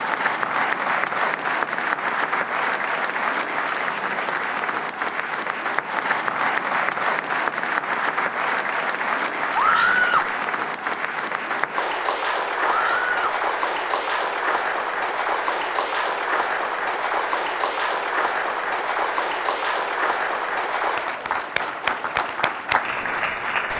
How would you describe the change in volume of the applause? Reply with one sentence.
The volume of the applause stays about the same.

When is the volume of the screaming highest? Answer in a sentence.
The volume of the screaming peaks at 10 seconds.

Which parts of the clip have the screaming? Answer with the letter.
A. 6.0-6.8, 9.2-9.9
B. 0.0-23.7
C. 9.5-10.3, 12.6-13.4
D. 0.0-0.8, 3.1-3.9
C.